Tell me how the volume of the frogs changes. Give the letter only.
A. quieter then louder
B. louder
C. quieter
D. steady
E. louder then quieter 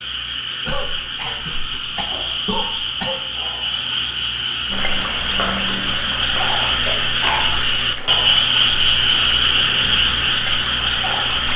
B.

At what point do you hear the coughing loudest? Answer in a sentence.
The volume of the coughing peaks at 7 seconds.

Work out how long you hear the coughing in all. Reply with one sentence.
The coughing can be heard for 3 seconds in total.